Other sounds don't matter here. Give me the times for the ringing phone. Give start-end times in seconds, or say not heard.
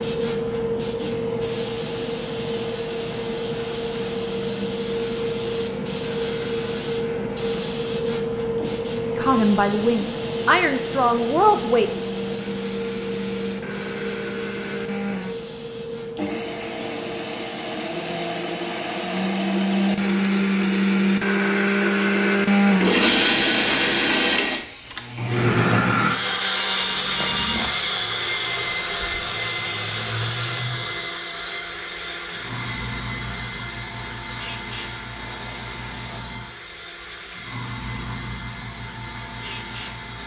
26.6-27.7.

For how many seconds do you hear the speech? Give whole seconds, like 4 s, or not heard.
3 s.